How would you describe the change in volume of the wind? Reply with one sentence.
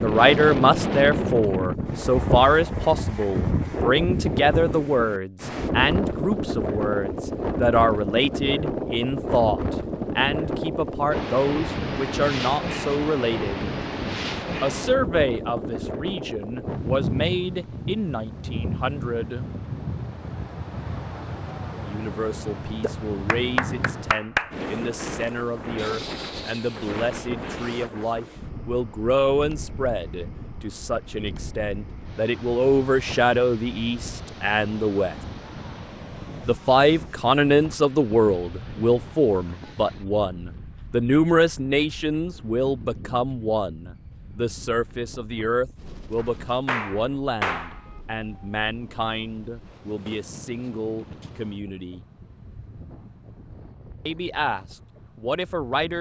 The volume of the wind goes down.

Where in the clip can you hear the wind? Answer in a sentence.
The wind can be heard from 0.0 to 55.9 s.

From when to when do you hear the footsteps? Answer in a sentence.
The footsteps can't be heard in this clip.